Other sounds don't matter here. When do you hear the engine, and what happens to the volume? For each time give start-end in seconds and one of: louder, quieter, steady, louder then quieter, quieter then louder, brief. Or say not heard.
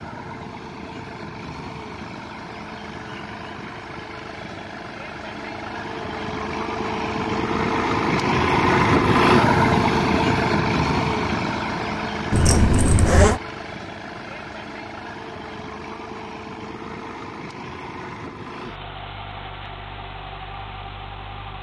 0.0-21.5 louder then quieter.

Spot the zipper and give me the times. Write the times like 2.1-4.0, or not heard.
12.3-13.4.